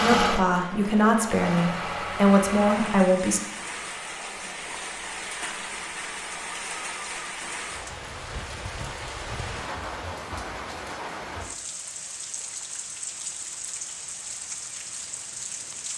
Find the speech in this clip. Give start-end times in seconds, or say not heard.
0.0-3.4.